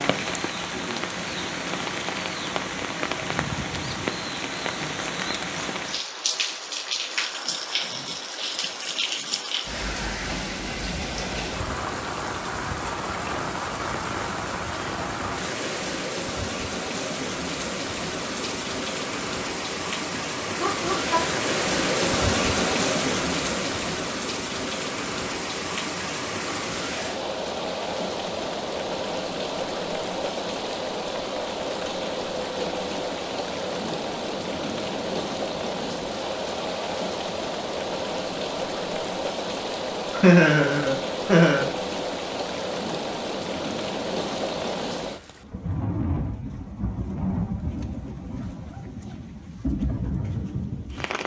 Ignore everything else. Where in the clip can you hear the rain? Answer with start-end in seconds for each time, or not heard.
0.0-51.2.